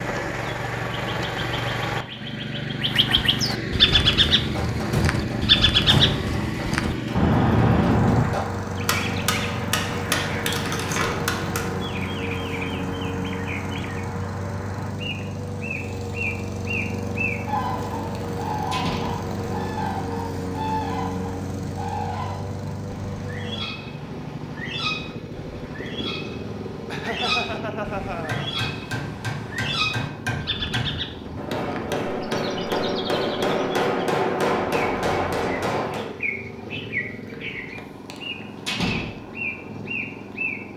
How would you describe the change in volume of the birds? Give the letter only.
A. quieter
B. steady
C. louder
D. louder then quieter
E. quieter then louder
A.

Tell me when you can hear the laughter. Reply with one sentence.
The laughter can be heard from 26.9 to 28.5 s.